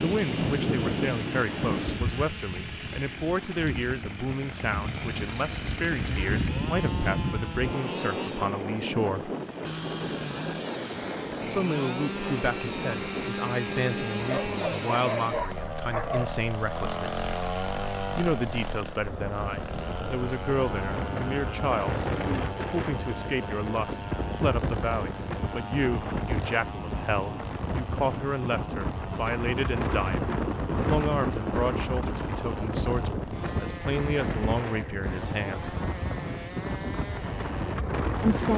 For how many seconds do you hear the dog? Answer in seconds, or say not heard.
2 s.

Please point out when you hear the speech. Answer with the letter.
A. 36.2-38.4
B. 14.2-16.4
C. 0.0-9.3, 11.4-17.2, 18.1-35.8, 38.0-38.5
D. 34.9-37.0
C.